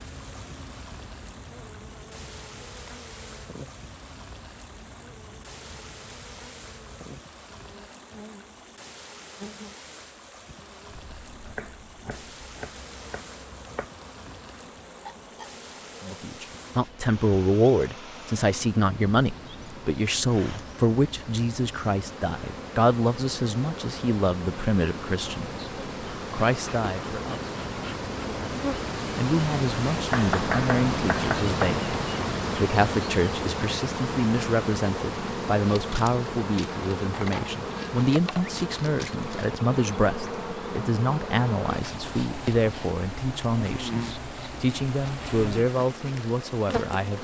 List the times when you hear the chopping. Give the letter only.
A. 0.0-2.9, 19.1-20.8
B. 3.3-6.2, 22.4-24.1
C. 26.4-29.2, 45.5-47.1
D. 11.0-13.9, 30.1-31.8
D.